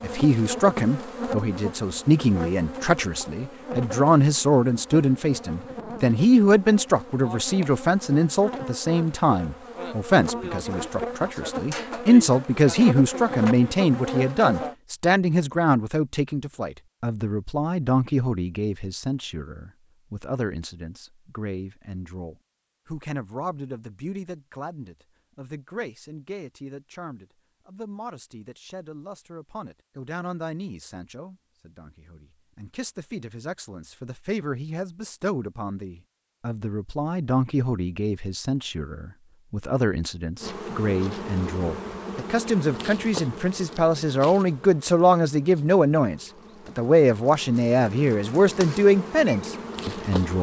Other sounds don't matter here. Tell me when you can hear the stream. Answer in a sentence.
The stream can't be heard in this clip.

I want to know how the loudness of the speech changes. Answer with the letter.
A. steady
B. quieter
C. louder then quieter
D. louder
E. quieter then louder
E.